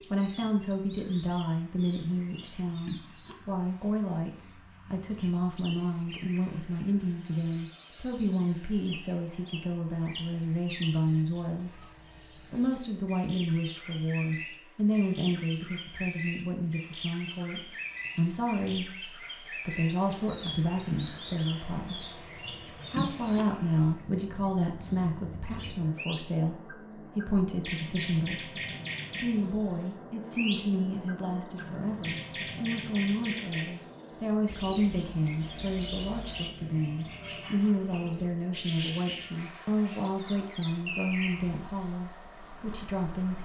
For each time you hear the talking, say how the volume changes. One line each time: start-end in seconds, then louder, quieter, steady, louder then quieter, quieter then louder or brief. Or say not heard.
0.1-11.8 steady
12.4-43.4 steady.